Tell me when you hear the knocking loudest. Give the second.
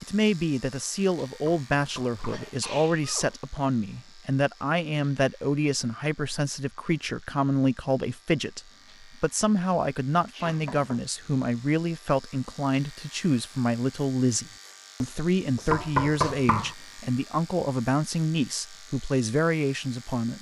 16 s.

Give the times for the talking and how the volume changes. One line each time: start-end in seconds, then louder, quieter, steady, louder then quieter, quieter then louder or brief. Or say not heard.
0.0-20.3 steady.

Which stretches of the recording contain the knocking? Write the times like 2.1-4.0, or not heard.
1.4-2.5, 10.4-11.1, 15.7-16.8.